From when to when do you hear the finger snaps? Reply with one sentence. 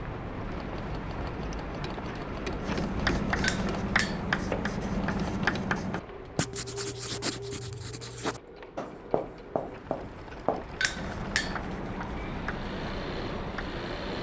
The finger snaps can be heard from 3.4 to 4.2 s and from 10.8 to 11.6 s.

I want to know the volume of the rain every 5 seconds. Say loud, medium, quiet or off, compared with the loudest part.
loud, medium, loud.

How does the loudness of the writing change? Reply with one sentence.
The volume of the writing goes down.